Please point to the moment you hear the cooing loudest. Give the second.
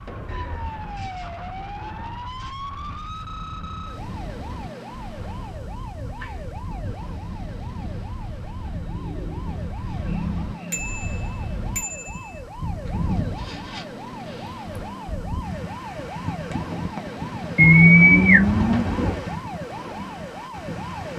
18 s.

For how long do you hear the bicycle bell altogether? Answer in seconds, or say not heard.
2 s.